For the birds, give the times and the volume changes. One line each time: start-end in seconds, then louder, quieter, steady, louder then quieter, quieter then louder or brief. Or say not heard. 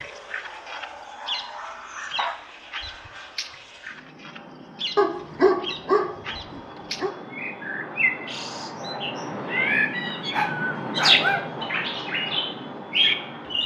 0.0-13.6 louder.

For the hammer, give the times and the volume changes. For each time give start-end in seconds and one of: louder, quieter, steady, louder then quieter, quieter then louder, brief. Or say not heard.
not heard.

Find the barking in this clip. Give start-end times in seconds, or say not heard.
0.5-2.4, 5.0-7.2, 9.8-11.5.